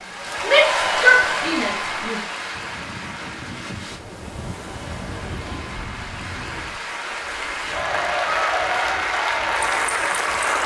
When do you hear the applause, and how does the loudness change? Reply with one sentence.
The applause can be heard from 0.0 to 10.6 s, getting quieter then louder.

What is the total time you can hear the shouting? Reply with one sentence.
You can hear the shouting for 2 seconds altogether.